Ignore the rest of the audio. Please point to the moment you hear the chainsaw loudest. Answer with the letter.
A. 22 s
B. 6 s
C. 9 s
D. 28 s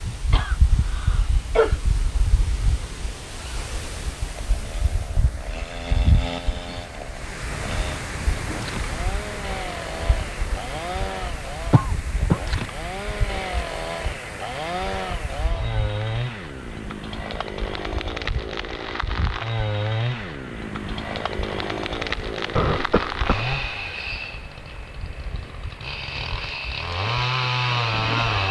D.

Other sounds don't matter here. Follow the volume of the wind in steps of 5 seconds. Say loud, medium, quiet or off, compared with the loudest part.
loud, loud, loud, medium, medium, medium.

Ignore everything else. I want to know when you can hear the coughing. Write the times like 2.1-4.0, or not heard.
0.3-1.8, 11.7-12.4, 22.6-23.6.